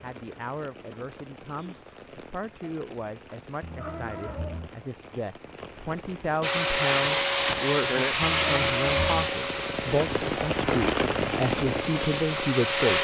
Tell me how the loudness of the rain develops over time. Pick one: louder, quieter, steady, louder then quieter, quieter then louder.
louder.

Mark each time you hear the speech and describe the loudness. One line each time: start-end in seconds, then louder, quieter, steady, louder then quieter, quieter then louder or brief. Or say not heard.
0.0-12.9 louder.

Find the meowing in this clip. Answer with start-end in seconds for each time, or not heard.
3.6-4.7, 8.2-9.3.